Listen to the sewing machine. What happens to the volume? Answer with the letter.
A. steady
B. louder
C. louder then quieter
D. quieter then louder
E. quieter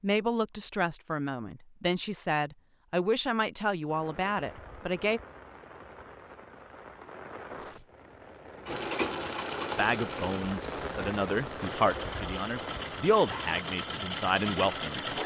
D.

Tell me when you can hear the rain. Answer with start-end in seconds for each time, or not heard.
3.9-15.2.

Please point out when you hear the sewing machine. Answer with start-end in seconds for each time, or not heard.
8.7-15.2.